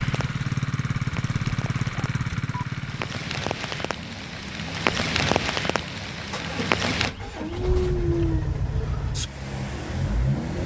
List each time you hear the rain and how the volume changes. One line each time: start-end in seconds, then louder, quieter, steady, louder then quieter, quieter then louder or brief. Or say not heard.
0.0-7.2 louder.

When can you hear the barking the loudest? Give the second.
8 s.